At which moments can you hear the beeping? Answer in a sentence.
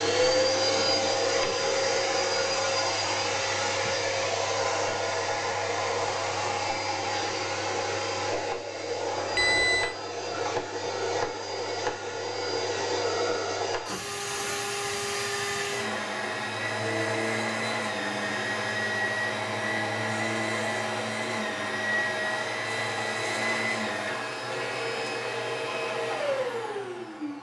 You can hear the beeping from 9.3 to 9.9 s.